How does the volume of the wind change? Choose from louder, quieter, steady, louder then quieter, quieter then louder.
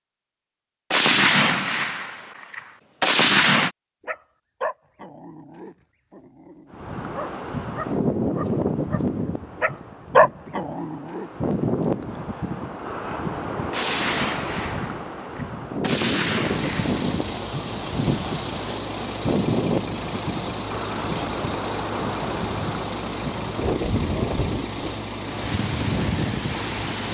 steady.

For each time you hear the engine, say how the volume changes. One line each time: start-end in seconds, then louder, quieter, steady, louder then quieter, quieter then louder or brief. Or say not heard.
16.4-27.0 steady.